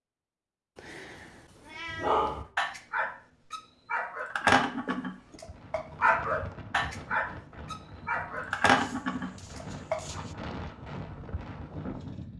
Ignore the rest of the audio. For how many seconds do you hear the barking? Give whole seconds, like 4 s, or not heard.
8 s.